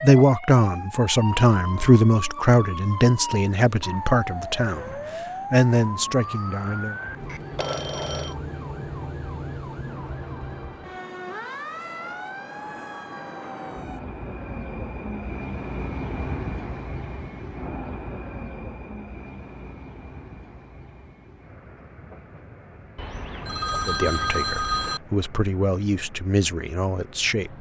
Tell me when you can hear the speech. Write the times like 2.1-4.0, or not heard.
0.0-7.0, 23.9-27.5.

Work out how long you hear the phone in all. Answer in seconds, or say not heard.
3 s.